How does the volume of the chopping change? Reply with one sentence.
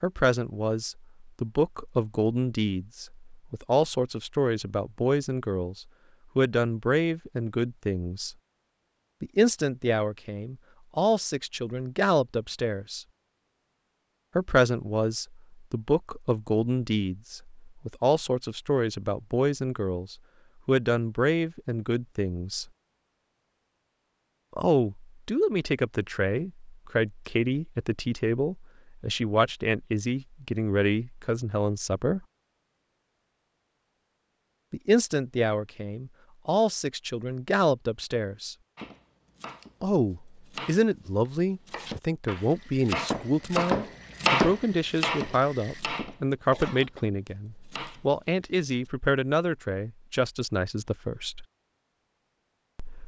The loudness of the chopping goes up, then down.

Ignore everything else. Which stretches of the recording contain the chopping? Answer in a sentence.
You can hear the chopping from 38.8 to 48.9 s.